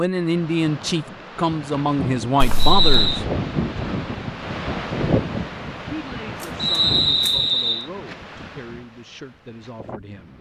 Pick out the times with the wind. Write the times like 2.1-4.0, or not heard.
0.0-10.3.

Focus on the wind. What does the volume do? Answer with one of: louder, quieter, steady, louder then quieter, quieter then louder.
louder then quieter.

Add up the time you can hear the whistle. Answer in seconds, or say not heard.
2 s.